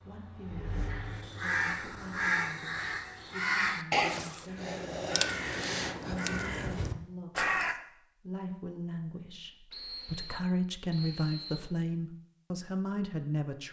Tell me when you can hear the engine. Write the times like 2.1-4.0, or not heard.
0.0-2.1.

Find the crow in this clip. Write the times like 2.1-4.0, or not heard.
0.8-7.8.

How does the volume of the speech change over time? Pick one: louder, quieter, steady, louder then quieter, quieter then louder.
louder.